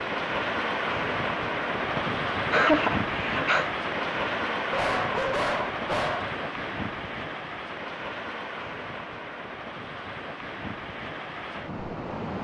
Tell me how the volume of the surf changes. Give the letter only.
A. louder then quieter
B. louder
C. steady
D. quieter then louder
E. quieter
E.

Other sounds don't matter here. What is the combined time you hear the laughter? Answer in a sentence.
The laughter can be heard for 2 seconds in total.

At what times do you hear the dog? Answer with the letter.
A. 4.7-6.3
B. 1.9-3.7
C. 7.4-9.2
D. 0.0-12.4
A.